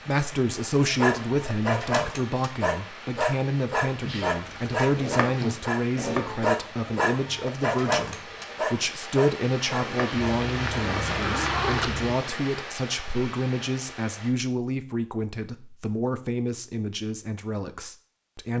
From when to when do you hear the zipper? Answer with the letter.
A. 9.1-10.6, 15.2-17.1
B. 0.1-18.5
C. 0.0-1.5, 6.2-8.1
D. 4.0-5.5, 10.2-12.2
D.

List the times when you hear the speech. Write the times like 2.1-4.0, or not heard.
0.1-18.5.